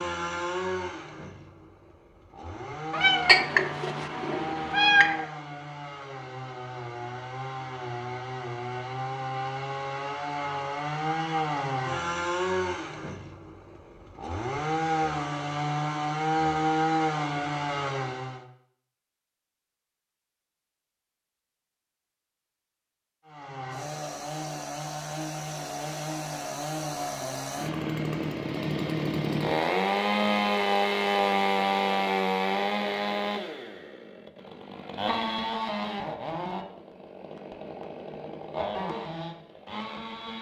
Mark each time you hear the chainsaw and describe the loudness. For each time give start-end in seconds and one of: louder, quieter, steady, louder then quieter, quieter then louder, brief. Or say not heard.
0.0-18.4 louder
23.2-40.3 louder then quieter.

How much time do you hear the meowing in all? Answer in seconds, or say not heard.
2 s.